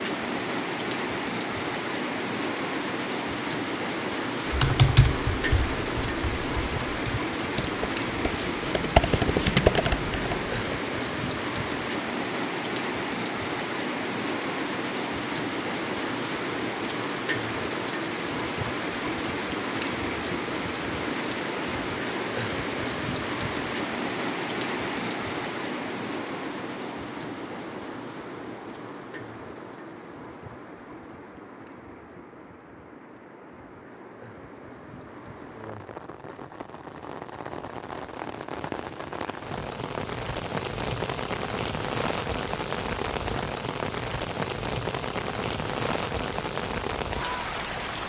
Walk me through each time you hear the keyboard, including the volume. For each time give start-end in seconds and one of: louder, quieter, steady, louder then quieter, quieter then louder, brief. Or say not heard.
4.5-10.6 quieter then louder.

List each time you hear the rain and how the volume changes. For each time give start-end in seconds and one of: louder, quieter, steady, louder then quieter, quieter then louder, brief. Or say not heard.
0.0-48.0 quieter then louder.